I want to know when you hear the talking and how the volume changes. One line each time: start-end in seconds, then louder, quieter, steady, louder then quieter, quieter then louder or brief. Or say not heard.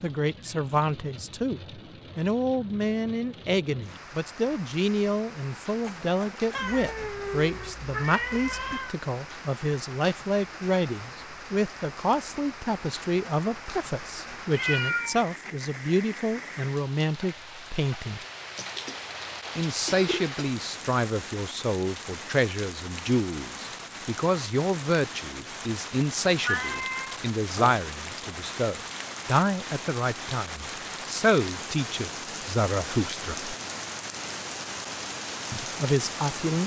0.0-18.2 steady
19.6-33.5 steady
35.5-36.6 brief.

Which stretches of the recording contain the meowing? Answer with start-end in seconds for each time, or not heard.
6.5-8.9, 14.5-15.2, 26.4-27.8.